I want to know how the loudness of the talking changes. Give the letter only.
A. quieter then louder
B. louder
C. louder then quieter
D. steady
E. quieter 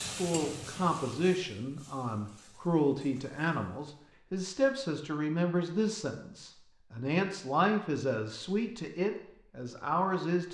D.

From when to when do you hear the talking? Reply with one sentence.
You can hear the talking from 0.0 to 10.4 s.